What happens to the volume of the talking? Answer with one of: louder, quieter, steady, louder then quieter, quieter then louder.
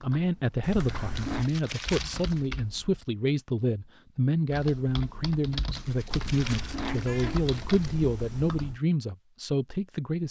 steady.